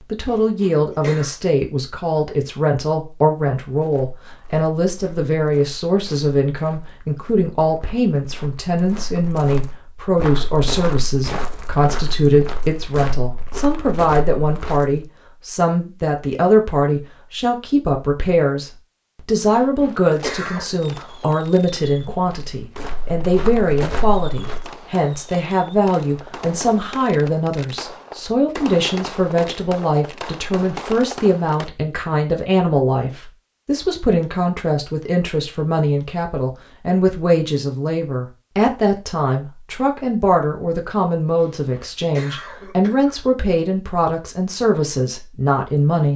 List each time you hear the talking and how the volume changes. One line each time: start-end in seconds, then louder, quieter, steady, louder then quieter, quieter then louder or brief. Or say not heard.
0.1-46.1 steady.